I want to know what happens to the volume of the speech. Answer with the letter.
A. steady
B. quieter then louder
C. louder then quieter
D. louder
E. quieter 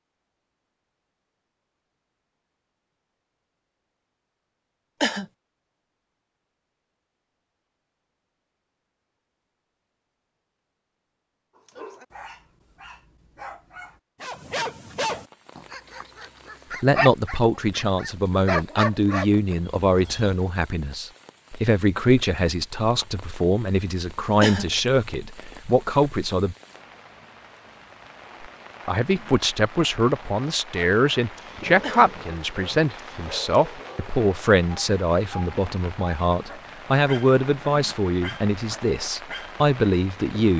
A.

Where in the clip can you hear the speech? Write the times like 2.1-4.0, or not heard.
16.8-26.6, 28.9-40.5.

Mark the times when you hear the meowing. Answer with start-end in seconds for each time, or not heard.
not heard.